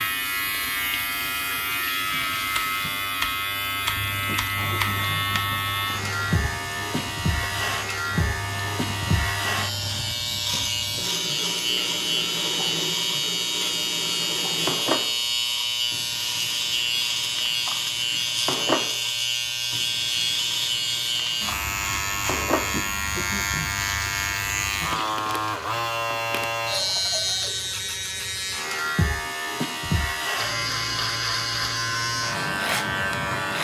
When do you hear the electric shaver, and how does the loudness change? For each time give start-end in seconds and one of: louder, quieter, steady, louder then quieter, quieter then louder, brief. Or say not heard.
0.0-33.5 steady.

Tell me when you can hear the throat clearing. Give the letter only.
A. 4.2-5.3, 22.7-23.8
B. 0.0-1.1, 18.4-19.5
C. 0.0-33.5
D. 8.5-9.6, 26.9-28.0
A.